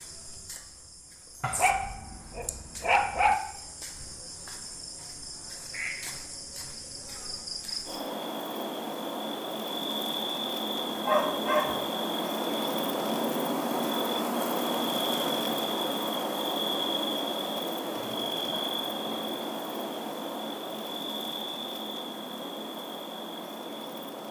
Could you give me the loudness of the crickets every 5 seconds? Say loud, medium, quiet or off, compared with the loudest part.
quiet, medium, loud, loud, medium.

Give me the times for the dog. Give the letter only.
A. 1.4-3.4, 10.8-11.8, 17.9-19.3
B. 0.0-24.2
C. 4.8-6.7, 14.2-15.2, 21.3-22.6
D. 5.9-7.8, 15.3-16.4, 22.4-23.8
A.